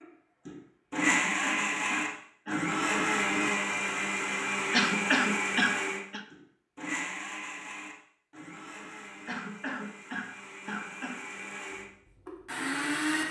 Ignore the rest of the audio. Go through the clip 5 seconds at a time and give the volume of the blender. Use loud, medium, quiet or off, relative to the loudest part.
loud, medium, medium.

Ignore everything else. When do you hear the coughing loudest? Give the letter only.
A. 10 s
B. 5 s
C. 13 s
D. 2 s
B.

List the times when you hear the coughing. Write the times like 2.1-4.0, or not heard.
1.1-2.7, 4.7-6.2, 9.2-11.2.